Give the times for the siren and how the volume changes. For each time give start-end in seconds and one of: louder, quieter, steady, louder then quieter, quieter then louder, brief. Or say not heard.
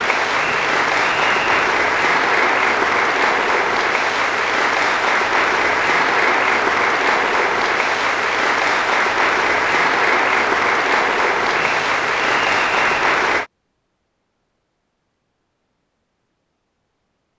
not heard.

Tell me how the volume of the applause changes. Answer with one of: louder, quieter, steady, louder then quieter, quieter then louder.
steady.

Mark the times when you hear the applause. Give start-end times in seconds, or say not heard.
0.0-13.4.